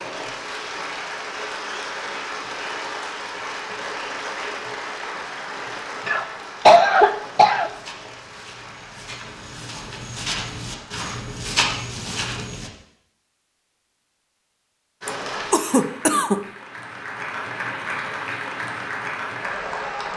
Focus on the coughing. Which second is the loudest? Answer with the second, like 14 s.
7 s.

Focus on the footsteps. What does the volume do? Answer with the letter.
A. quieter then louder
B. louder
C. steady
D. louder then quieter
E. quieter
B.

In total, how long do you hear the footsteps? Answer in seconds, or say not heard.
5 s.